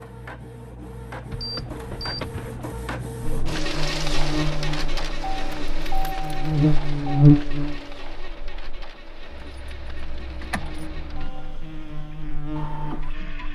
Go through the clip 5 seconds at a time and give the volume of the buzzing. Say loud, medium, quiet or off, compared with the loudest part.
medium, loud, quiet.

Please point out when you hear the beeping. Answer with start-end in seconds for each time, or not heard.
1.4-2.5.